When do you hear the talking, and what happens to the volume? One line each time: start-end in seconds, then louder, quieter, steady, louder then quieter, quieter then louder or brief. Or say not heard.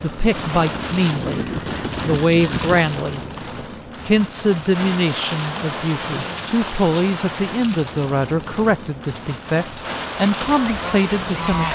0.0-1.4 brief
2.0-3.2 brief
4.0-11.7 steady.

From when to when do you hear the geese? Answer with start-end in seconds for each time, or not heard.
0.0-2.8, 10.2-11.7.